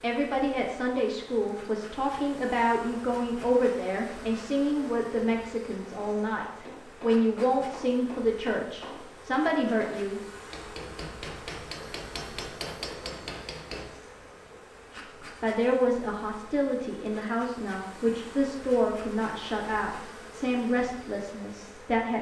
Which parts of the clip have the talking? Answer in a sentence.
The talking can be heard from 0.0 to 10.2 s and from 15.4 to 22.1 s.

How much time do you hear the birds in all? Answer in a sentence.
The birds can't be heard in this clip.